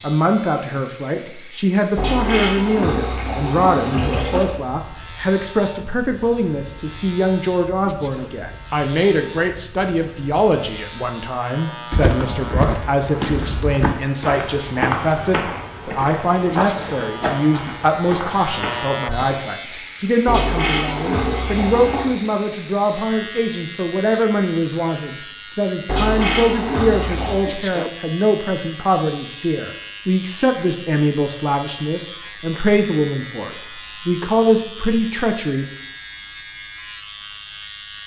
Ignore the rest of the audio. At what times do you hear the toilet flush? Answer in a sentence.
You can hear the toilet flush from 1.9 to 4.6 s, from 20.2 to 22.1 s and from 25.9 to 27.4 s.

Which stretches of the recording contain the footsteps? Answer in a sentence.
You can hear the footsteps from 11.9 to 19.4 s.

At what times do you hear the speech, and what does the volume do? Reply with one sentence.
The speech can be heard from 0.0 to 35.6 s, at a steady volume.